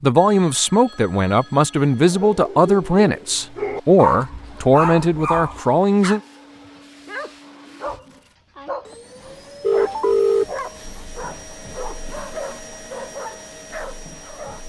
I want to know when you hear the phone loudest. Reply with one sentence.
The loudest moment of the phone is at 10 seconds.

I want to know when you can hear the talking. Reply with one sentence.
You can hear the talking from 0.0 to 6.2 s.